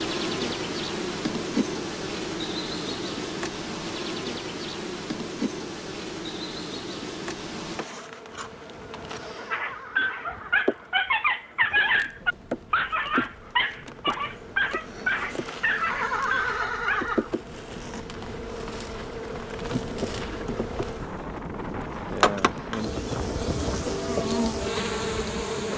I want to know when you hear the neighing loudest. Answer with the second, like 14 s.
16 s.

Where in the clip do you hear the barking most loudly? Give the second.
12 s.